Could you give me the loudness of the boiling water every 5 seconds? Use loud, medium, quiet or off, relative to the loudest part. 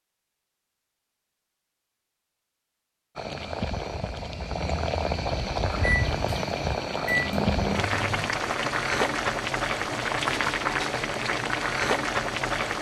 medium, loud, loud.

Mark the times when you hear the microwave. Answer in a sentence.
The microwave can be heard from 5.8 to 8.3 s.